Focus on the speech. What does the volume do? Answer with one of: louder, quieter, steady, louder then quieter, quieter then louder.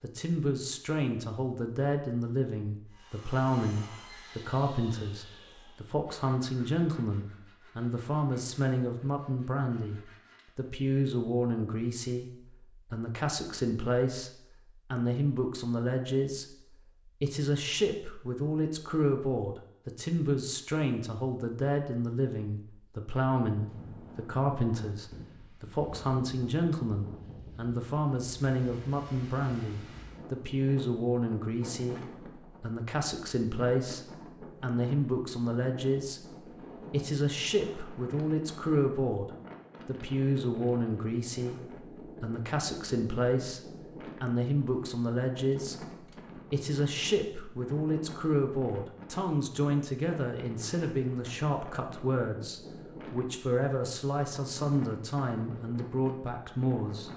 steady.